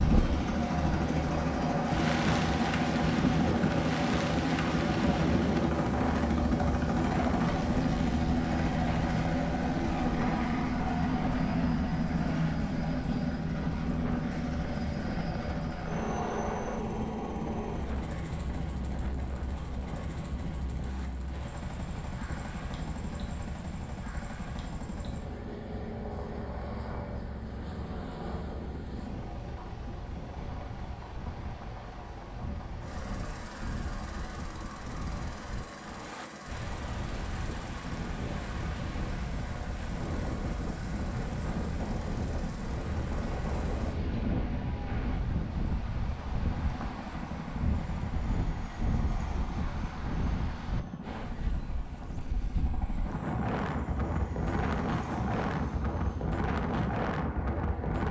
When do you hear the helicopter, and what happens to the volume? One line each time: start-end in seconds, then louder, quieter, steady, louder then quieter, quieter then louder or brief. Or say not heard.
0.0-58.0 quieter.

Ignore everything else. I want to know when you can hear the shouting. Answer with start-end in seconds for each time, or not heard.
not heard.